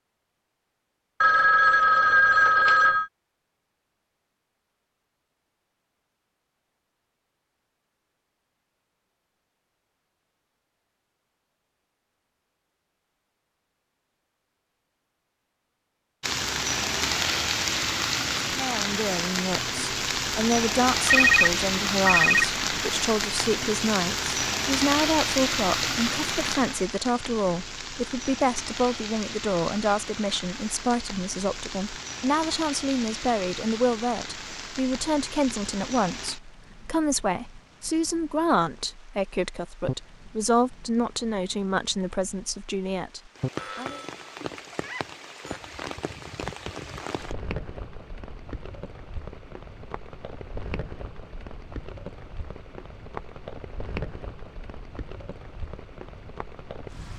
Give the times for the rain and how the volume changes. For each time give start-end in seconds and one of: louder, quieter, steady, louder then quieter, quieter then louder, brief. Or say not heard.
16.2-57.1 quieter.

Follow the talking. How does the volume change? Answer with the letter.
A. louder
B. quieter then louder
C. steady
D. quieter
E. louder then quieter
C.